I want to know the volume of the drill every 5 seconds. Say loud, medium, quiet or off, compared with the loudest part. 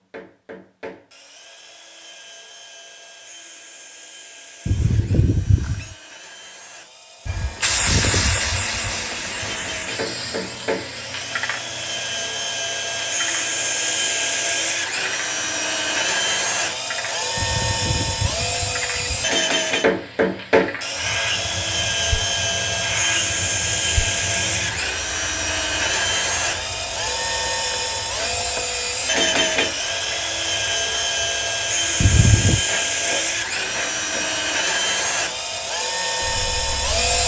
quiet, quiet, loud, loud, loud, loud, loud, loud.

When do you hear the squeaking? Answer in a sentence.
The squeaking can be heard from 4.7 to 6.0 s, from 17.4 to 19.3 s and from 32.0 to 32.6 s.